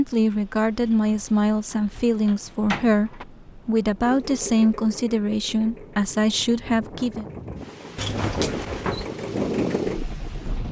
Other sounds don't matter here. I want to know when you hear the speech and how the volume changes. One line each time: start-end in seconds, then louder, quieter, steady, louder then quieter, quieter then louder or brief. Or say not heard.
0.0-7.2 steady.